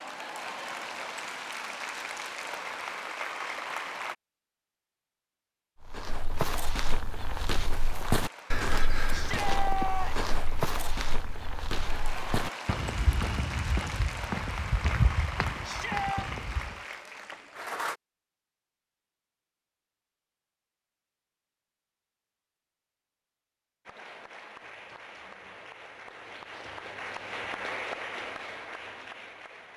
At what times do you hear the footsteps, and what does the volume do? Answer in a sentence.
You can hear the footsteps from 5.8 to 16.8 s, at a steady volume.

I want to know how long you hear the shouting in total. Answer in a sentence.
The shouting can be heard for 2 seconds in total.